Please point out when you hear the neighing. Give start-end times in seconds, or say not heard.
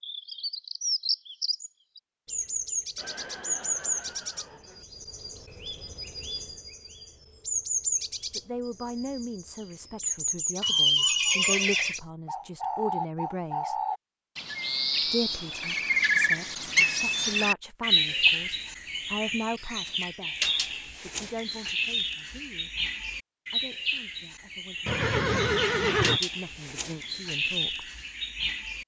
3.0-4.8, 10.6-12.0, 24.9-26.2.